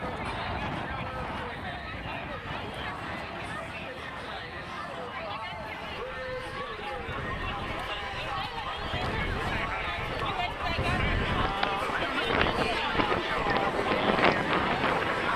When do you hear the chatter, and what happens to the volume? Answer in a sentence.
You can hear the chatter from 0.0 to 15.3 s, getting louder.